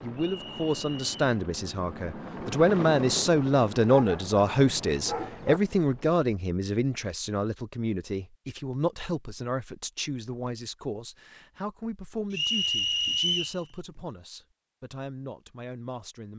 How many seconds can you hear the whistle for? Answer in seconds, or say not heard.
2 s.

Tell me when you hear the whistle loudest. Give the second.
13 s.